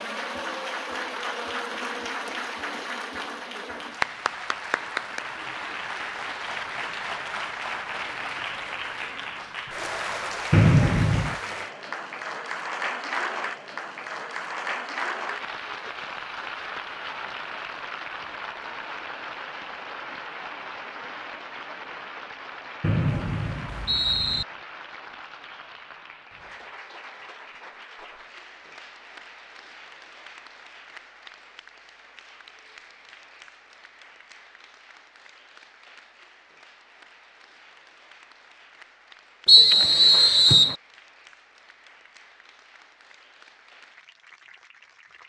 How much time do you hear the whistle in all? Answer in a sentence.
The whistle can be heard for 4 seconds in total.